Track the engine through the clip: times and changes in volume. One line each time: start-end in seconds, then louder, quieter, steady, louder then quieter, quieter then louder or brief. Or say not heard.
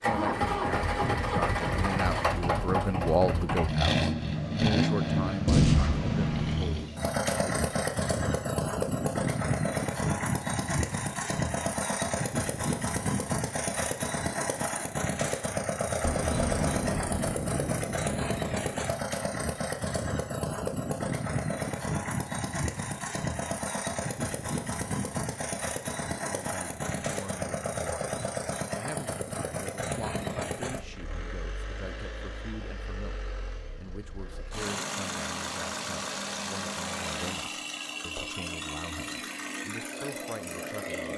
0.0-41.1 quieter.